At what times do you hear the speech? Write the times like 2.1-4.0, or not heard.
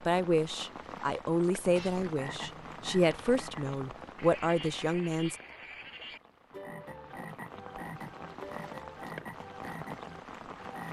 0.1-5.3.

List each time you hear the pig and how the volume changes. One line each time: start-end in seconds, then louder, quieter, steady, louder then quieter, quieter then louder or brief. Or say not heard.
not heard.